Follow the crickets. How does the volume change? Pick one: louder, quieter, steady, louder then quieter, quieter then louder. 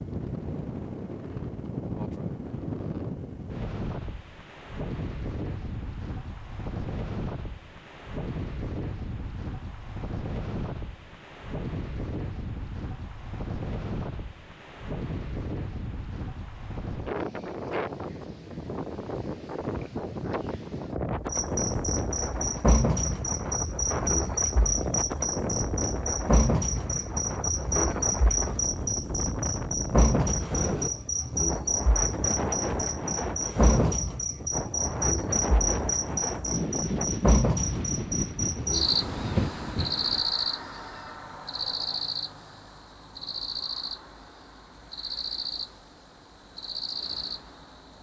quieter.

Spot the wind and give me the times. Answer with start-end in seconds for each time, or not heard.
0.0-40.2.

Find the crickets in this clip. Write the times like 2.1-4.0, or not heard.
21.3-47.9.